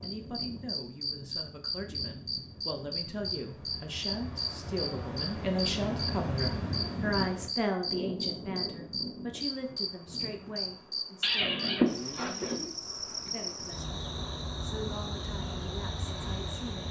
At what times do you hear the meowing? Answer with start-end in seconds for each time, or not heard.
11.2-12.7.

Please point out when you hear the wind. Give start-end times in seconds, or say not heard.
0.0-16.8.